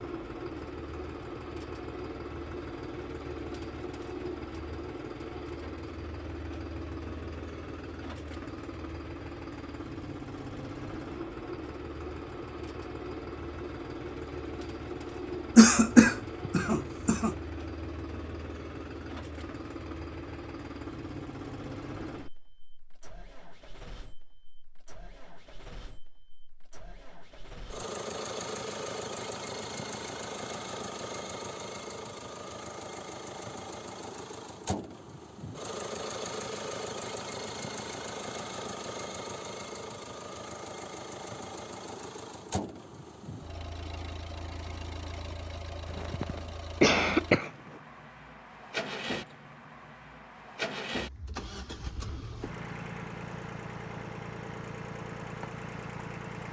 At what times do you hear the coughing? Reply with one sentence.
The coughing can be heard from 15.6 to 17.4 s and from 45.9 to 47.5 s.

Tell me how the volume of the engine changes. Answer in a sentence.
The volume of the engine stays about the same.